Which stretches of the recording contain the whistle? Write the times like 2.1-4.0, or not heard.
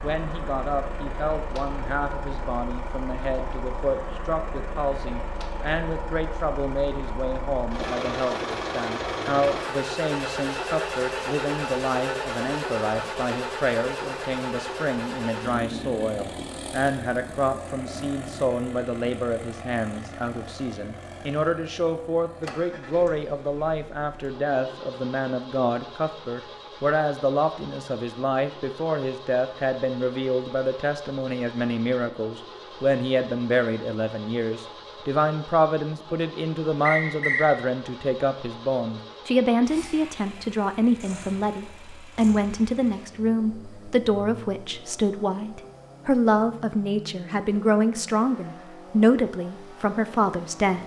36.9-37.5.